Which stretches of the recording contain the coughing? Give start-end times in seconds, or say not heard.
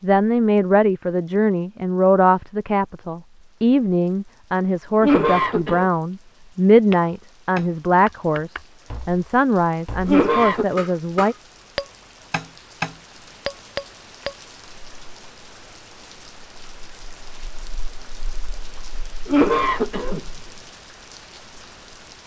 5.0-5.9, 10.1-10.7, 19.2-20.2.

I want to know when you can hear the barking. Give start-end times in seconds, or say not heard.
not heard.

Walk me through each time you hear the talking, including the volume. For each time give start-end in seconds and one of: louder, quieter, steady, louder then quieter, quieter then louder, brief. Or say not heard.
0.0-11.3 steady.